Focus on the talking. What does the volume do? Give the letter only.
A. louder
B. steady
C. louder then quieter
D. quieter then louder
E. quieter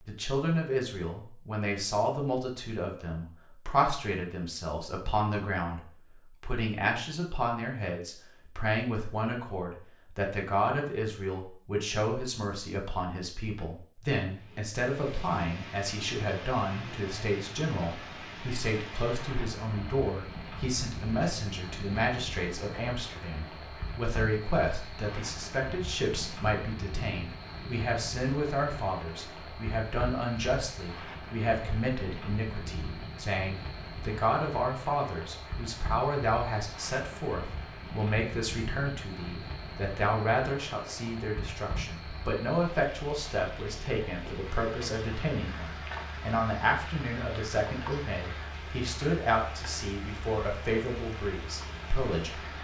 B.